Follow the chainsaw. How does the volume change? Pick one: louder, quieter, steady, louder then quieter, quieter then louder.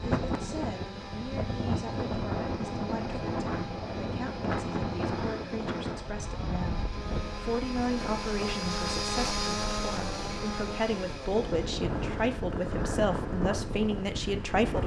louder then quieter.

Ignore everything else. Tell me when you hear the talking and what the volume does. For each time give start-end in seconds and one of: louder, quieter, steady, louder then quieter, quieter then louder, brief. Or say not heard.
0.0-14.8 louder.